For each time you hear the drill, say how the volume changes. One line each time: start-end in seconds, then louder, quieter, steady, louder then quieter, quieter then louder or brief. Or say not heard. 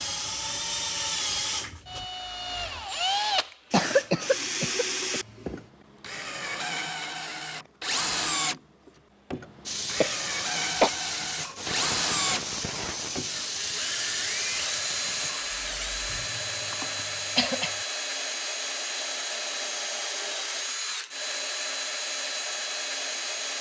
0.0-23.5 steady.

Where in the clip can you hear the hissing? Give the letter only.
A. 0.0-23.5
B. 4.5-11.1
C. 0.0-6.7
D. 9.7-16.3
D.